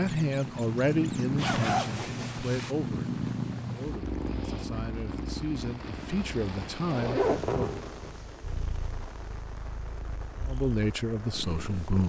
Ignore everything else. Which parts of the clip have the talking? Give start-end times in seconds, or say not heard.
0.0-7.7, 10.4-12.0.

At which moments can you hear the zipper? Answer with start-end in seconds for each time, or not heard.
1.4-2.8, 6.8-8.2.